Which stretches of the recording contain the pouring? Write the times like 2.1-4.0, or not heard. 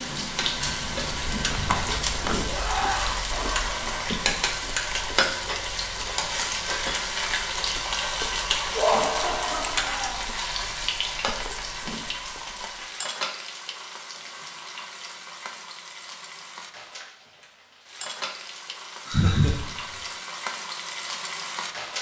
not heard.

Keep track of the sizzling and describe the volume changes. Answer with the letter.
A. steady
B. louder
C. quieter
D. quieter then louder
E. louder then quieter
C.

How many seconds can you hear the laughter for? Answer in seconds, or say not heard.
4 s.